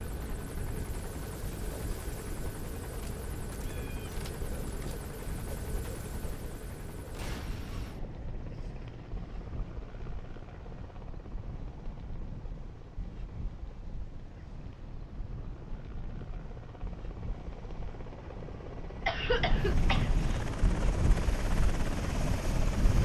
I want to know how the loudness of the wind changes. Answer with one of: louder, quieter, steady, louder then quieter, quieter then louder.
louder.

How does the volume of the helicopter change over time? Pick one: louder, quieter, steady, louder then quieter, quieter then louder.
quieter then louder.